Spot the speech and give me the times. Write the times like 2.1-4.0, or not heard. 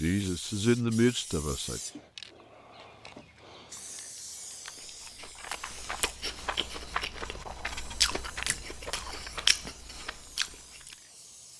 0.0-1.8.